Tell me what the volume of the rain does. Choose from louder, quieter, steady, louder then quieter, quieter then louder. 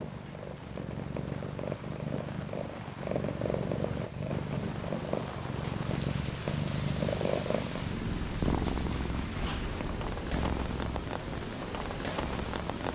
louder.